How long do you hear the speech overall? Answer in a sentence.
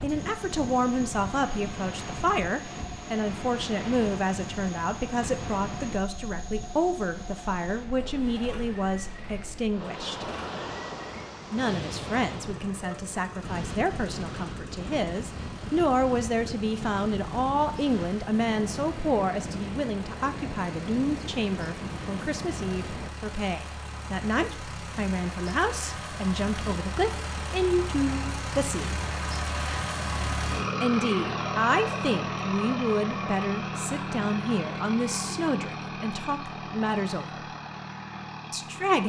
You can hear the speech for 35 seconds altogether.